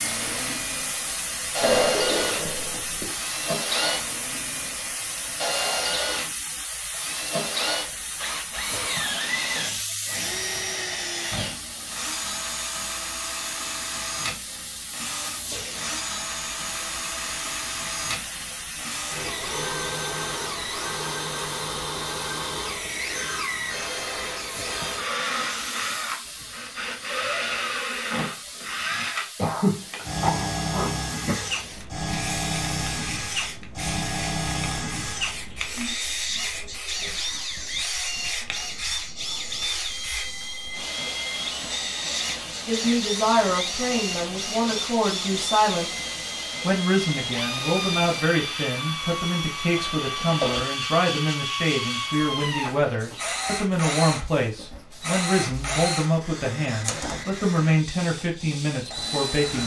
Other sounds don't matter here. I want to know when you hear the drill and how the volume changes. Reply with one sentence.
The drill can be heard from 0.0 to 59.6 s, at a steady volume.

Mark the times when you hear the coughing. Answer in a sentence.
You can hear the coughing from 1.6 to 3.1 s, from 29.4 to 31.4 s and from 49.8 to 50.6 s.